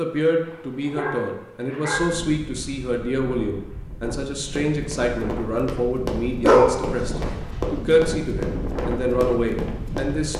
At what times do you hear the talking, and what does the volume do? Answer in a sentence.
The talking can be heard from 0.0 to 10.3 s, at a steady volume.